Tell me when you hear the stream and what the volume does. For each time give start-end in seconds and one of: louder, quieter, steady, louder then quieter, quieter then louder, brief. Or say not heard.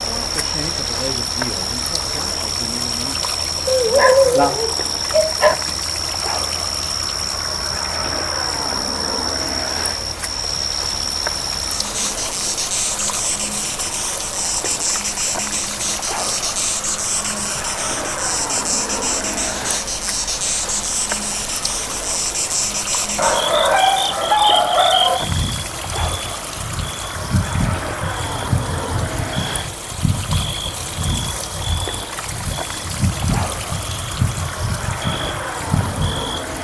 0.0-36.5 steady.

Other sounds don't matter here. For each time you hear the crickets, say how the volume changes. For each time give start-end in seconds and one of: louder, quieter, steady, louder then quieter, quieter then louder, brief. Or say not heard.
0.0-36.5 steady.